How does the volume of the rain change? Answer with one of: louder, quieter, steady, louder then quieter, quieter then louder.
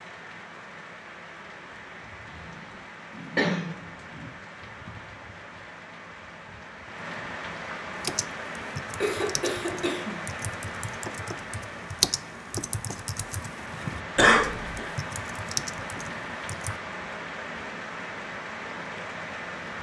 louder.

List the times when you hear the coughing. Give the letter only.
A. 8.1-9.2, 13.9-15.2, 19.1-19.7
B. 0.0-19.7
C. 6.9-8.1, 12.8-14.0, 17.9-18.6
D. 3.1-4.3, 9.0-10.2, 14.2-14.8
D.